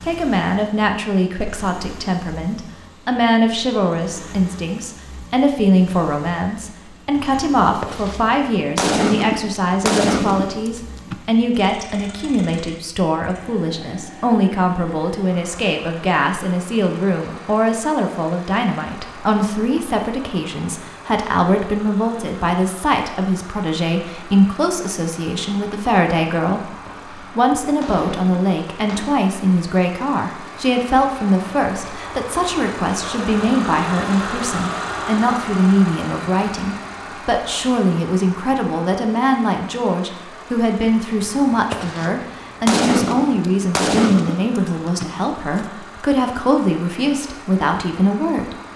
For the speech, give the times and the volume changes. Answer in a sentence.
You can hear the speech from 0.0 to 48.5 s, at a steady volume.